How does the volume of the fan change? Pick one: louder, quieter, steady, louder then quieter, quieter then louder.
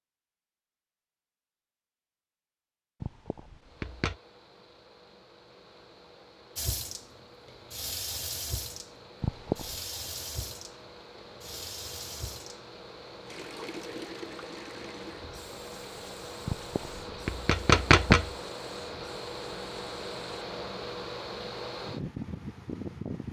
louder.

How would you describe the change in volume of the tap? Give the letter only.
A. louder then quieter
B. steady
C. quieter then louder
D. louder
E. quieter
E.